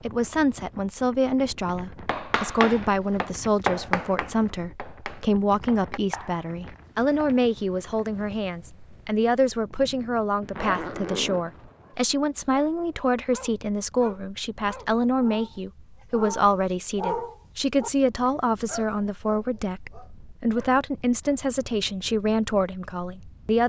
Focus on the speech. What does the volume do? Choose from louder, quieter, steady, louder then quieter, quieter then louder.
steady.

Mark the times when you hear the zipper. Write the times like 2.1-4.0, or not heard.
10.4-11.4.